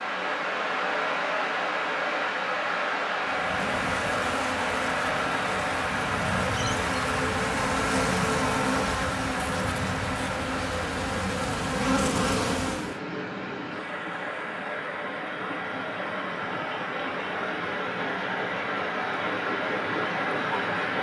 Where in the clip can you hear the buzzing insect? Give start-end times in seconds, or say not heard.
3.2-12.9.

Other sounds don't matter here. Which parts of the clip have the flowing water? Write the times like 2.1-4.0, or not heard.
0.0-20.9.